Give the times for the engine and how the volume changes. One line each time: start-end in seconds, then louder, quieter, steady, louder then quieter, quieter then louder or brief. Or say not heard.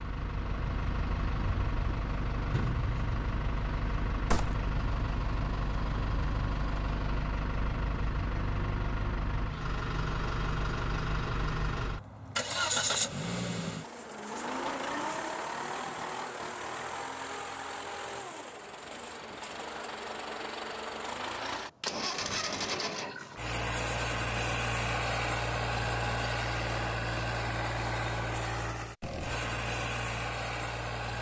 0.0-31.1 steady.